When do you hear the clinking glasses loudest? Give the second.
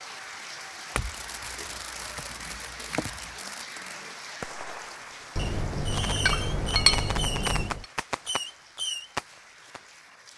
7 s.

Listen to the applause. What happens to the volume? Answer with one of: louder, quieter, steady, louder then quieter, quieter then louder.
quieter.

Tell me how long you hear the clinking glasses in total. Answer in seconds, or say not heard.
5 s.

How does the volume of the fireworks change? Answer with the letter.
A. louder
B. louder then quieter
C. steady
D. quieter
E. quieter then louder
A.